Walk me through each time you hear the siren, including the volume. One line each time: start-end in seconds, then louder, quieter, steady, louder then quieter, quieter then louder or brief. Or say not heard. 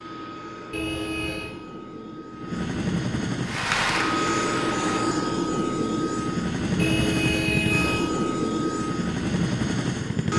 not heard.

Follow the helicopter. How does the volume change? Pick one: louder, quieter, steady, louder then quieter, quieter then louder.
louder.